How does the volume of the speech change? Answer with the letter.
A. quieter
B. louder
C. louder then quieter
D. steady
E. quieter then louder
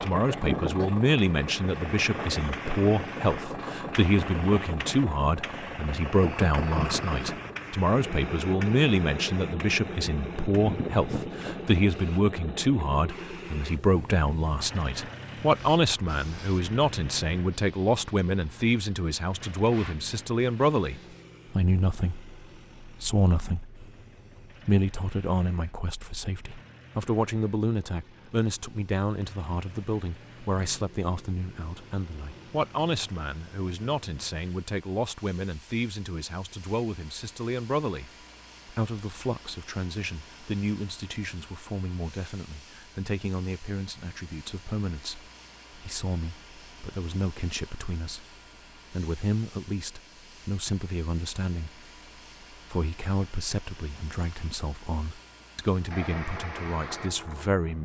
A.